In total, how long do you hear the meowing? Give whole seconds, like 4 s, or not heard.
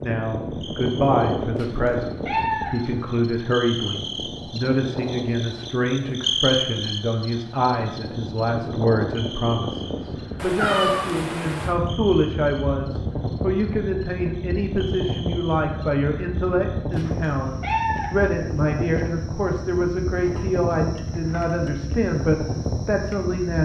4 s.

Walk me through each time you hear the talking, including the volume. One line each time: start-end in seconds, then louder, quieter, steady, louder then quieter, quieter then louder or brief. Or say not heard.
0.0-23.5 steady.